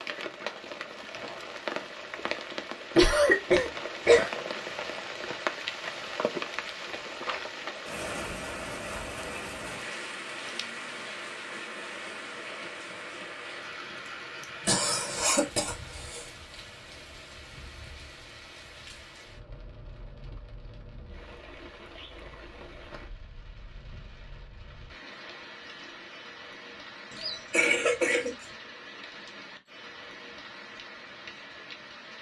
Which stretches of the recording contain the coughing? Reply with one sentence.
The coughing can be heard from 3.0 to 4.3 s, from 14.7 to 16.2 s and from 27.1 to 28.3 s.